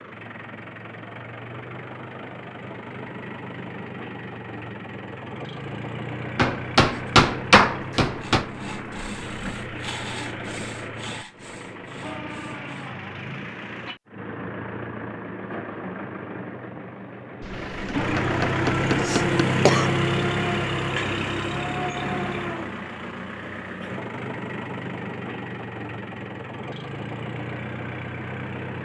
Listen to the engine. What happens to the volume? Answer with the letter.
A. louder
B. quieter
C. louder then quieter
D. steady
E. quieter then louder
C.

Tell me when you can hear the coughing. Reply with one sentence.
The coughing can be heard from 18.9 to 19.9 s.